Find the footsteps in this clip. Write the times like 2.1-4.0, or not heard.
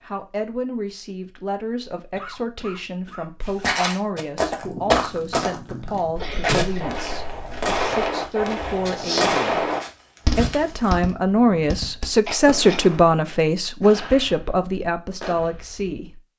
3.5-10.9.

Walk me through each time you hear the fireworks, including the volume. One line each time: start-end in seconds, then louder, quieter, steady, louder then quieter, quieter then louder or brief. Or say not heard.
4.2-15.9 louder then quieter.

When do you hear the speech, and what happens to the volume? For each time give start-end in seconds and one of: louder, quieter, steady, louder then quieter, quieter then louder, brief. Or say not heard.
0.0-9.7 steady
10.3-16.2 quieter.